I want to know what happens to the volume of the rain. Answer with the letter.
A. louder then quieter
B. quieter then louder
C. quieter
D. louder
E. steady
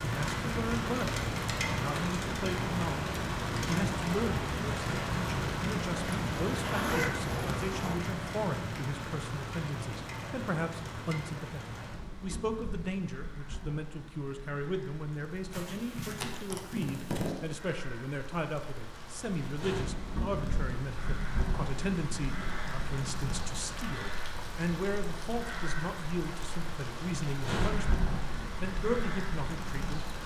B.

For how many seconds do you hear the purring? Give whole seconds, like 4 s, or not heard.
not heard.